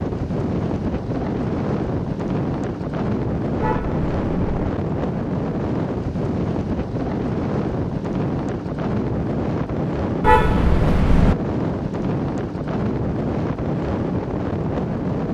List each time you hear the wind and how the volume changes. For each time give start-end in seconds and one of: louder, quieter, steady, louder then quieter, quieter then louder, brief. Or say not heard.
0.0-15.2 steady.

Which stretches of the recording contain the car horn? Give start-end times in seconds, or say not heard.
3.6-4.7, 10.2-11.3.